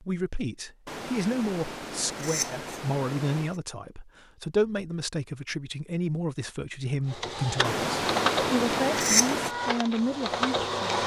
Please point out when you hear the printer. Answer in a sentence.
The printer can be heard from 7.1 to 11.0 s.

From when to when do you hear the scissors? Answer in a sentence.
You can hear the scissors from 0.8 to 3.5 s and from 7.6 to 9.5 s.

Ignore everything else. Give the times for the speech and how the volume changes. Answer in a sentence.
The speech can be heard from 0.0 to 11.0 s, at a steady volume.